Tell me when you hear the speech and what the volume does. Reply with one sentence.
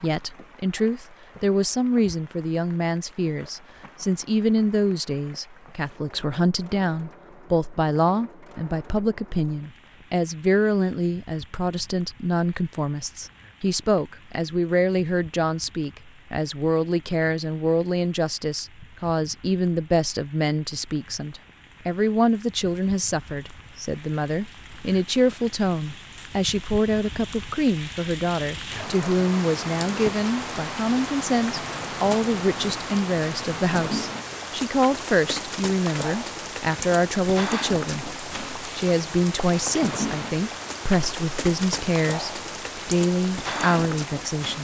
The speech can be heard from 0.0 to 44.6 s, at a steady volume.